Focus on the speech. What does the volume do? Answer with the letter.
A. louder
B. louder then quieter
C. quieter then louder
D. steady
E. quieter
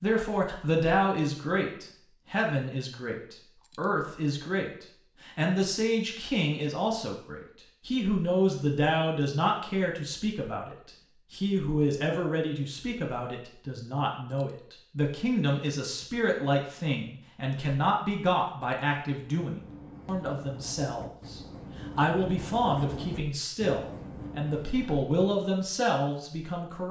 D.